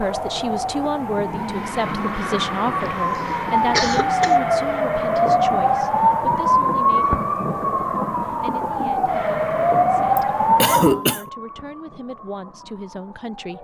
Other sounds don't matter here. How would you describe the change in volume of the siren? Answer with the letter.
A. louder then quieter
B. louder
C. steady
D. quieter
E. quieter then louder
A.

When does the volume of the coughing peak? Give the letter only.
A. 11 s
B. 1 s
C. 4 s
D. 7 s
A.